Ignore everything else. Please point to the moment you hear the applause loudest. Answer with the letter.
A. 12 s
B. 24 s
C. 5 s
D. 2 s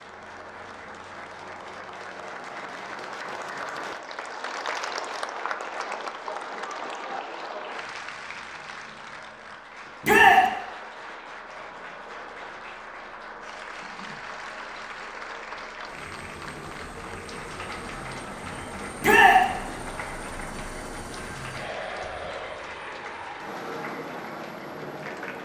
C.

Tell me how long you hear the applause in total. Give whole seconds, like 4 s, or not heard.
25 s.